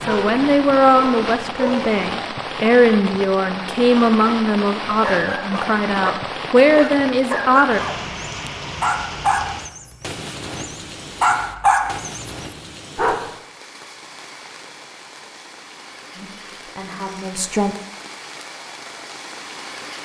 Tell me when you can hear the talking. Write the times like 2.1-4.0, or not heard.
0.1-7.8, 16.1-17.8.